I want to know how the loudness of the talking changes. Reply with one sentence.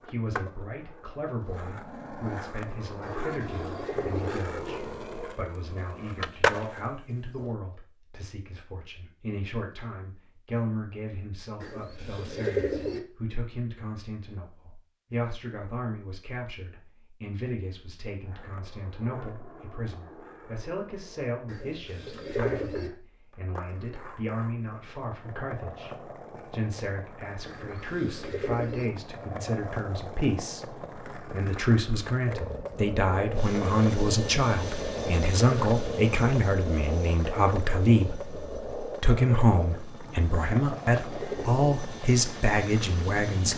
The volume of the talking goes up.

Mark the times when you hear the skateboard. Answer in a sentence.
You can hear the skateboard from 0.0 to 7.5 s and from 18.2 to 43.5 s.